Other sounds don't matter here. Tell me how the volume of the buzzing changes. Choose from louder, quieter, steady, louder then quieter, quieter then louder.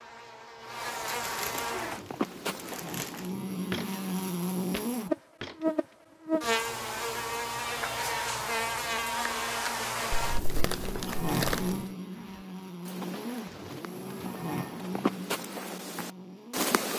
louder then quieter.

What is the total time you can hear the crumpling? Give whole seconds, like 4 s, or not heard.
4 s.